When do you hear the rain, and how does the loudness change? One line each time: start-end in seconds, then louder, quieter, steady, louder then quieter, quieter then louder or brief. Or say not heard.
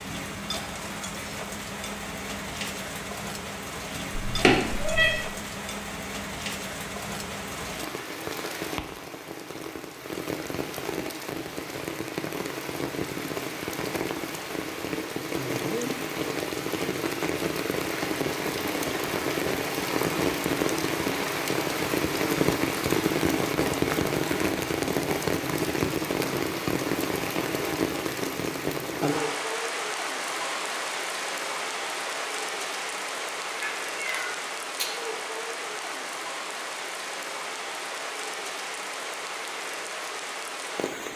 0.0-41.1 louder then quieter.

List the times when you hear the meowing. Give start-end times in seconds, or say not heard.
4.2-5.2, 33.6-34.9.